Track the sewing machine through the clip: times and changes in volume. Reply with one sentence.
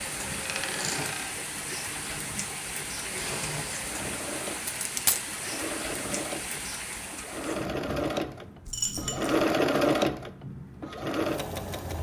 The sewing machine can be heard from 0.0 to 11.9 s, getting louder.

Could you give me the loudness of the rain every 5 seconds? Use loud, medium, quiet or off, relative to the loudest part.
loud, loud, medium.